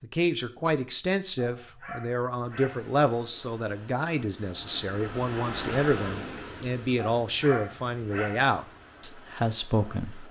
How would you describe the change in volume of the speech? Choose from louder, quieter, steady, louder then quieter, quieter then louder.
steady.